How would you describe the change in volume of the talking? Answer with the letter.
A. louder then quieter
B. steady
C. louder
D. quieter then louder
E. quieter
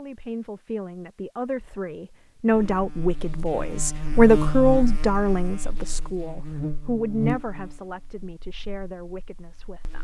A.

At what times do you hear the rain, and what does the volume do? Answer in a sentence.
You can't hear the rain here.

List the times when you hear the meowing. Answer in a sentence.
The meowing can't be heard in this clip.